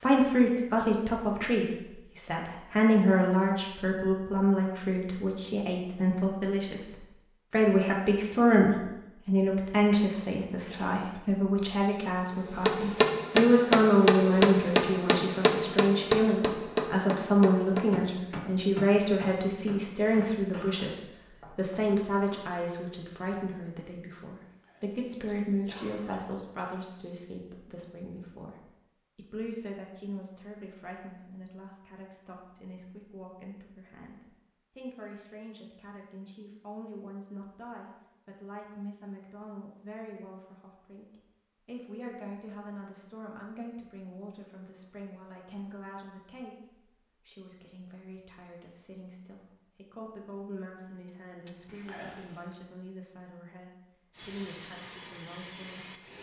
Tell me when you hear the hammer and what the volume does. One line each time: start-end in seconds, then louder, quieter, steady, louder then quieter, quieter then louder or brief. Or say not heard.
12.6-22.4 quieter.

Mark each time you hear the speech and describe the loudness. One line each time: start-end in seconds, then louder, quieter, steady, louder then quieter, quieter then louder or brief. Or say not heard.
0.0-56.0 quieter.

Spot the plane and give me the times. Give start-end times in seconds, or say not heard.
54.1-56.1.